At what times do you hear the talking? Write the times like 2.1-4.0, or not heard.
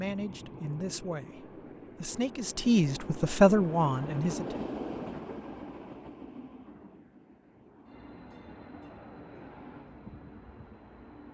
0.0-4.7.